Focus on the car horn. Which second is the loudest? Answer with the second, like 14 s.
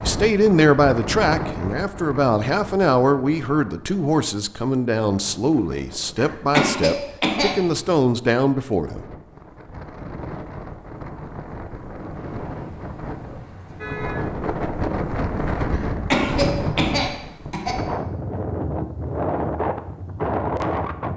14 s.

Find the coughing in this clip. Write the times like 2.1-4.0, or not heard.
6.2-7.5, 15.7-17.8.